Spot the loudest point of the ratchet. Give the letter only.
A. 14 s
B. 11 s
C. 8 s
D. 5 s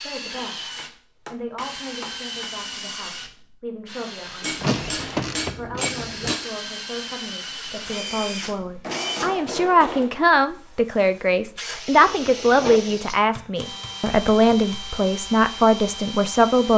D.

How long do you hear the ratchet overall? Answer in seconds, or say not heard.
2 s.